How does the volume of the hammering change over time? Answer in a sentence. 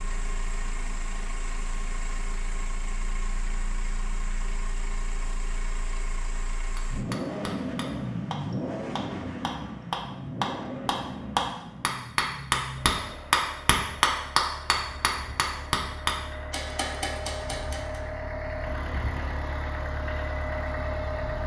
The volume of the hammering goes up, then down.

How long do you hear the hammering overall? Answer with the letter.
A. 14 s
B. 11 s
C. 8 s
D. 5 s
B.